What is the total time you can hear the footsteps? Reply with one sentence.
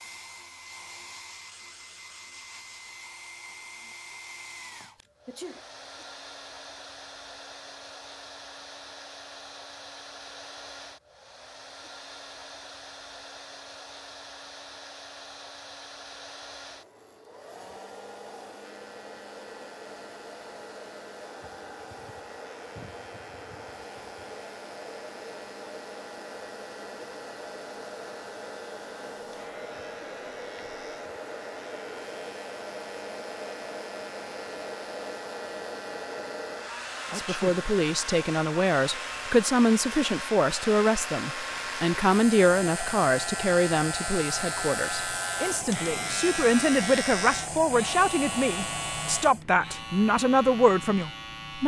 The footsteps can't be heard in this clip.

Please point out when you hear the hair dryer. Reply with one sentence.
You can hear the hair dryer from 0.0 to 49.5 s.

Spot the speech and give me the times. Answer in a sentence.
The speech can be heard from 37.1 to 51.6 s.